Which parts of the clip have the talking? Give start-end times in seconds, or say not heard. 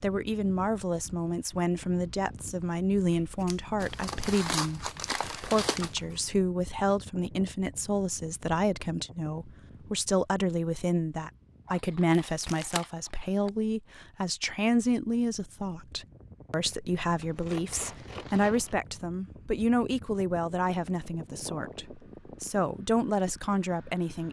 0.0-24.2.